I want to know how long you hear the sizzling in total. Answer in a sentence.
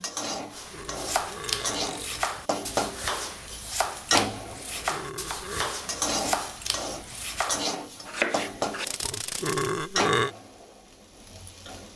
The sizzling can be heard for 12 seconds in total.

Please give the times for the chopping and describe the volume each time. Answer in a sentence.
The chopping can be heard from 0.5 to 9.8 s, at a steady volume.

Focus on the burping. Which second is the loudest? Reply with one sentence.
The volume of the burping peaks at 10 seconds.